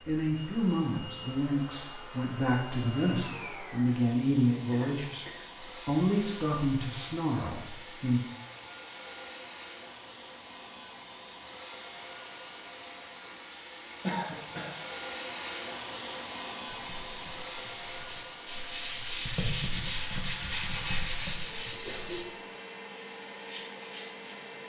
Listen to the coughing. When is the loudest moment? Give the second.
14 s.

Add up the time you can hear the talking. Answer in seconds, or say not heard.
8 s.